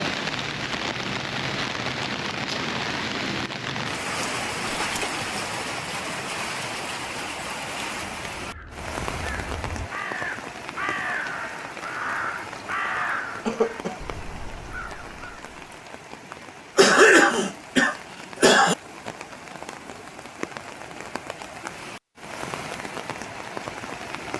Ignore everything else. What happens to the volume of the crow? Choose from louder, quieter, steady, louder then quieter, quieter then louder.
louder then quieter.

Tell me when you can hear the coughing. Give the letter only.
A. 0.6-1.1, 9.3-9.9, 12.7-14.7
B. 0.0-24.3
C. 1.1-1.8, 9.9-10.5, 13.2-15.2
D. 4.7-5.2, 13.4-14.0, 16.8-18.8
D.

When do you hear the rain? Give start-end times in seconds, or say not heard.
0.0-24.3.